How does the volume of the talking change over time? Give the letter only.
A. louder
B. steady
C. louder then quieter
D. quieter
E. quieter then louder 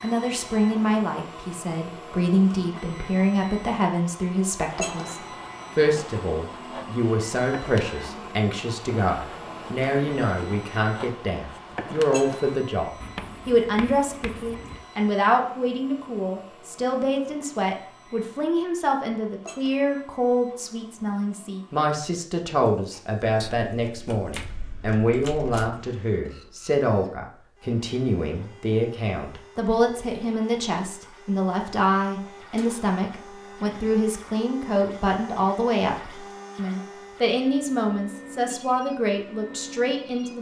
B.